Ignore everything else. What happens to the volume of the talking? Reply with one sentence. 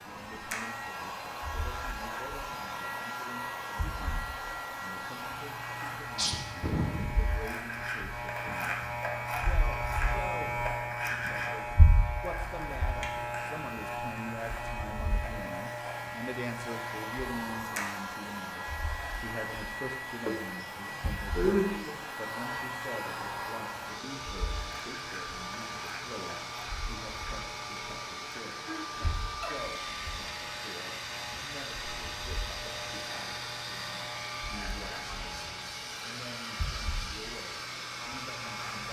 The loudness of the talking goes up, then down.